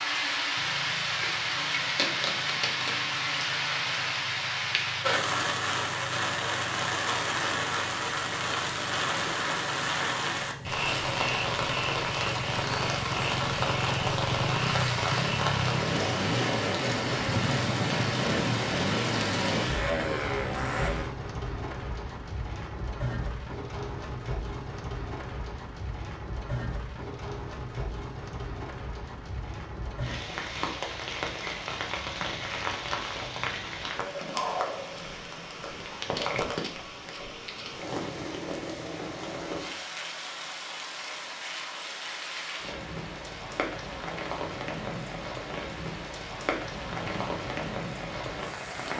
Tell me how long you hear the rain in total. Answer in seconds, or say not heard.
49 s.